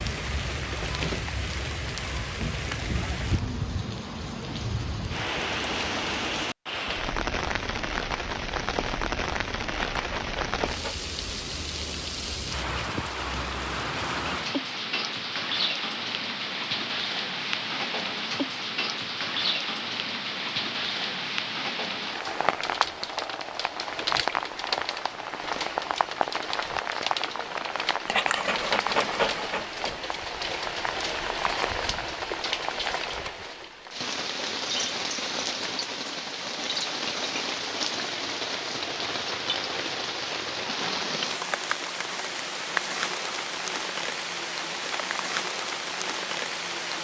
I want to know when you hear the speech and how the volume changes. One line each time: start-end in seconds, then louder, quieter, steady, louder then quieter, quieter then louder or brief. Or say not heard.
not heard.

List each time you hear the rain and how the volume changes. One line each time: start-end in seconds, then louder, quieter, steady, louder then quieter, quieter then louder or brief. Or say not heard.
0.0-46.9 steady.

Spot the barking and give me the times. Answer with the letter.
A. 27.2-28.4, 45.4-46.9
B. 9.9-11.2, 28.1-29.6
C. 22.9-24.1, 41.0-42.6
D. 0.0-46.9
B.